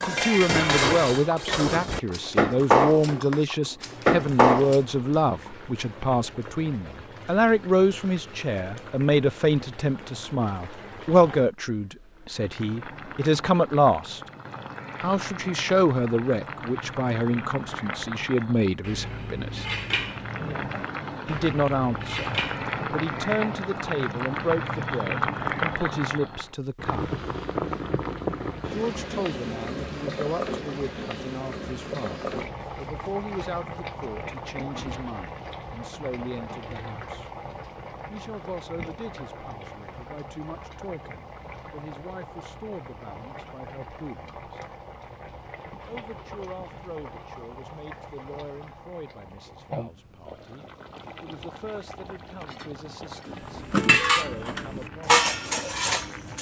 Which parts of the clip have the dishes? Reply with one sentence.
The dishes can be heard from 0.0 to 4.8 s, from 18.8 to 22.8 s and from 53.2 to 56.3 s.